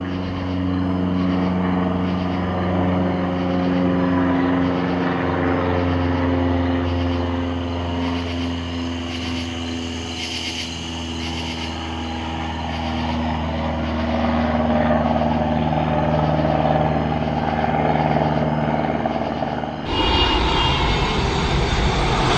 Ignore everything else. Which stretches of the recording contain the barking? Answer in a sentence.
The barking can't be heard in this clip.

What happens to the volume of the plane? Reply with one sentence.
The volume of the plane goes down, then up.